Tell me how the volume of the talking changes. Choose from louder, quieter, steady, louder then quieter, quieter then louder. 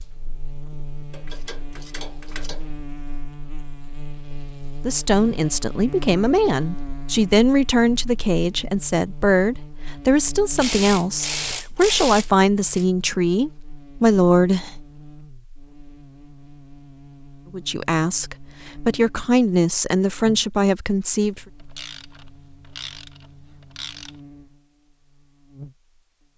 steady.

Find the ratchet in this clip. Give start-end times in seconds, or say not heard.
1.1-2.8, 10.6-12.8, 21.4-24.2.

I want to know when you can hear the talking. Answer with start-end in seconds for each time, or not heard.
4.8-14.7, 17.5-21.4.